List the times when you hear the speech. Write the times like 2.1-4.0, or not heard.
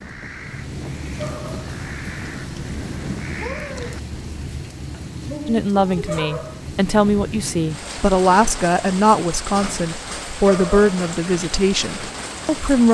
5.5-12.8.